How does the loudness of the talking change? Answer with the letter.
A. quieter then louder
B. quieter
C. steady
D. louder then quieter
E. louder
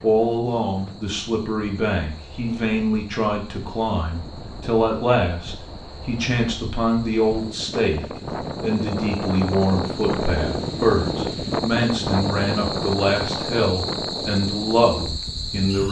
C.